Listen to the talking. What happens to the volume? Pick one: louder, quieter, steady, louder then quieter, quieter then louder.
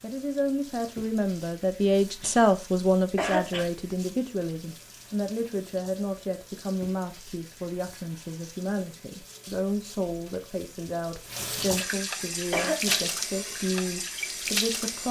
quieter.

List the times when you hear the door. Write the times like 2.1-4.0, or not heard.
not heard.